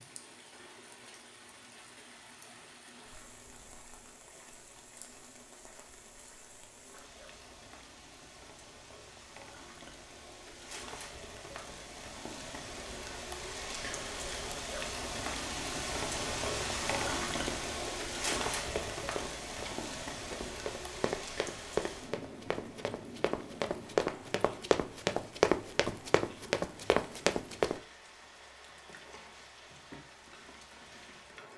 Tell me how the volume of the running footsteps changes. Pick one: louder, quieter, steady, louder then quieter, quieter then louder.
louder.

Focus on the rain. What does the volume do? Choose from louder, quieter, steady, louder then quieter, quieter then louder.
louder then quieter.